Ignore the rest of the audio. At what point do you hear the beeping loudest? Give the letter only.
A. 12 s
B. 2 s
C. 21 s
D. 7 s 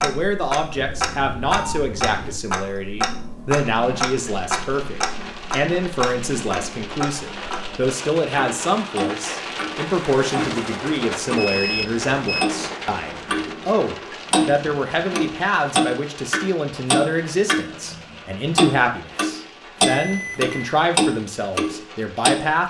A.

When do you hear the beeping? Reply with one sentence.
The beeping can be heard from 0.8 to 2.4 s, from 11.3 to 12.5 s and from 19.9 to 20.8 s.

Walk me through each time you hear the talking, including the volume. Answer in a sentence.
You can hear the talking from 0.0 to 22.6 s, at a steady volume.